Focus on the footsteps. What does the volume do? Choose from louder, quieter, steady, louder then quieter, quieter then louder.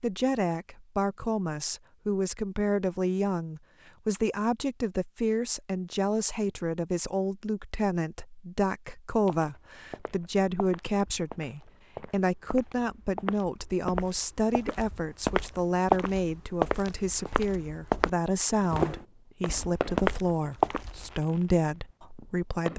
louder.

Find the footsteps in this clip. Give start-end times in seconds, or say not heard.
9.2-21.2.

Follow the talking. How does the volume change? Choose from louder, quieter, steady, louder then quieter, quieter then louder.
steady.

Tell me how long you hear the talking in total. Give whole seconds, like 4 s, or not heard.
23 s.